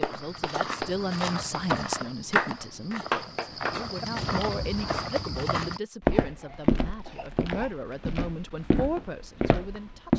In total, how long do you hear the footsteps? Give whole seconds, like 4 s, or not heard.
10 s.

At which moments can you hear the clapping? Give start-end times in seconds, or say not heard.
0.0-4.0.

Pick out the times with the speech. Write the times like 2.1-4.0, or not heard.
0.0-10.1.